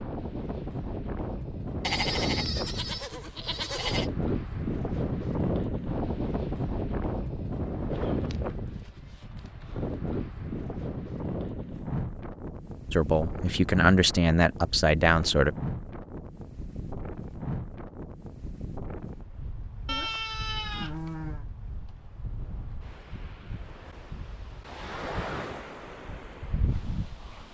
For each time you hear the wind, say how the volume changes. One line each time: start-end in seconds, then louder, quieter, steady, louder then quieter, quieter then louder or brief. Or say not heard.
0.0-27.4 quieter.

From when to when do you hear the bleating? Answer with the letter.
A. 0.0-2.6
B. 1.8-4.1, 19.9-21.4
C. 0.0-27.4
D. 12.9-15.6
B.